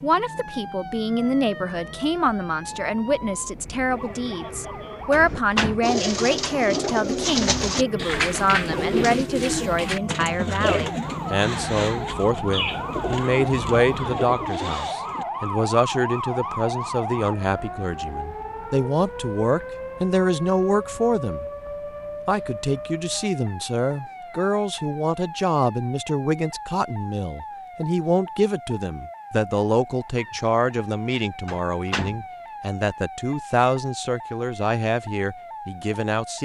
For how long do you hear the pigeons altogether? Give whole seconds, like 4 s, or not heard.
10 s.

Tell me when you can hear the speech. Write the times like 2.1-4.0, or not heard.
0.0-21.4, 22.2-36.3.